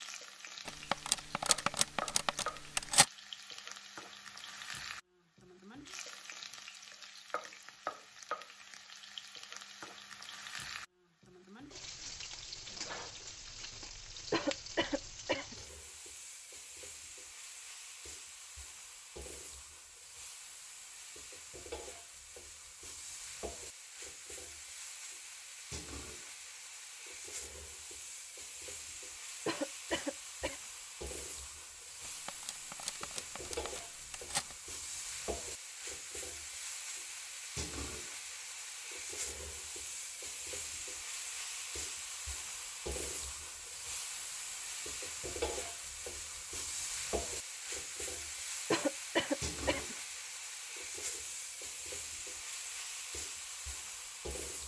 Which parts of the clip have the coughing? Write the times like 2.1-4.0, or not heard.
14.3-15.6, 29.4-30.6, 48.7-50.0.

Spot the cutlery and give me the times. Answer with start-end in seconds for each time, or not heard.
0.7-3.0, 32.0-34.5.